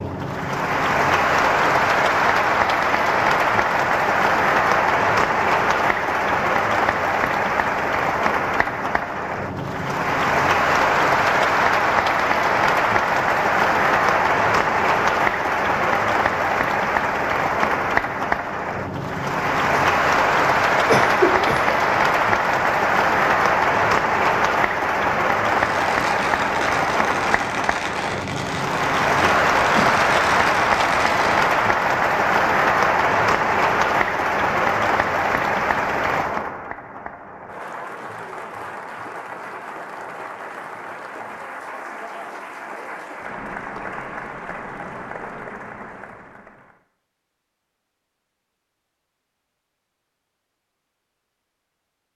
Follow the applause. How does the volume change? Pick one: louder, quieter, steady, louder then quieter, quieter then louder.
quieter.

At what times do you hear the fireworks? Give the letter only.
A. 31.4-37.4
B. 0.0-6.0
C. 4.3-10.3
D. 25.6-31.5
D.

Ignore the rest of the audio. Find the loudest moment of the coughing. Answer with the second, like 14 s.
21 s.